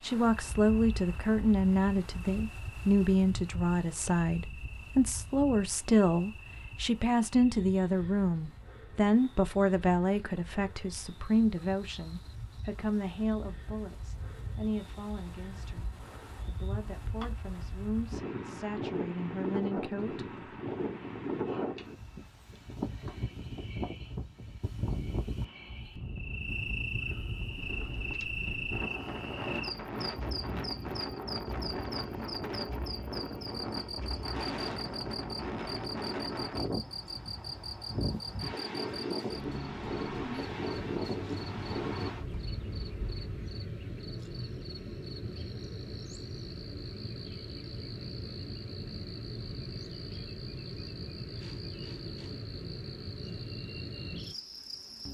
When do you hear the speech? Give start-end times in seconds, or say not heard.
0.0-20.3.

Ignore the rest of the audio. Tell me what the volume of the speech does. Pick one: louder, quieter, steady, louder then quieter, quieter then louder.
quieter.